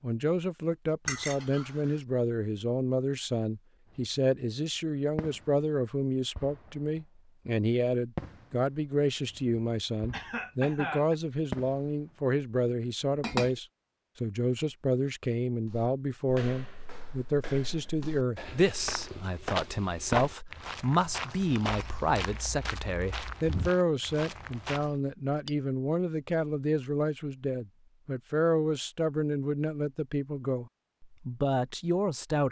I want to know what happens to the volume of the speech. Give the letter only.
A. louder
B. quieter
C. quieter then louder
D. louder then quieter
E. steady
E.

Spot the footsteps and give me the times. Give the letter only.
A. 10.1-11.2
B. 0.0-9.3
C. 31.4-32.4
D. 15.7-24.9
D.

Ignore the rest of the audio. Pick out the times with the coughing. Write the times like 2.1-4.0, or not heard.
10.1-11.2.